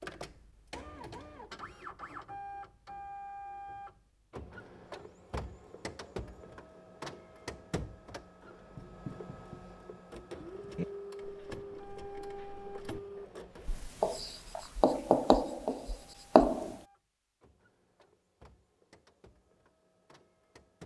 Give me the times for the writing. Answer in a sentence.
You can hear the writing from 8.7 to 16.8 s.